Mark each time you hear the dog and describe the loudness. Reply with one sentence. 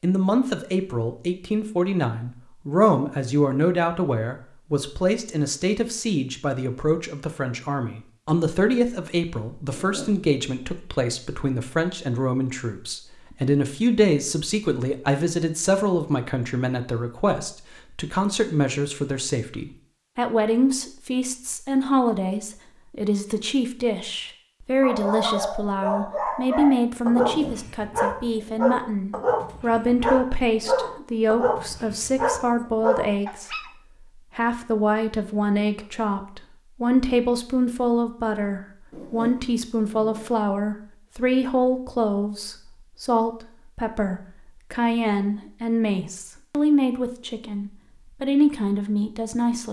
You can hear the dog from 24.8 to 33.7 s, at a steady volume.